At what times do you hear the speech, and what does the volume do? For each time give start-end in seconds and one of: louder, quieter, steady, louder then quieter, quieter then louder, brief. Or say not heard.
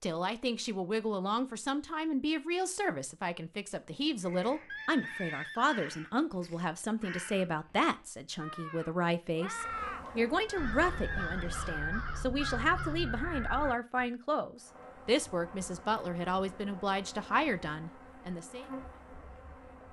0.0-18.6 steady.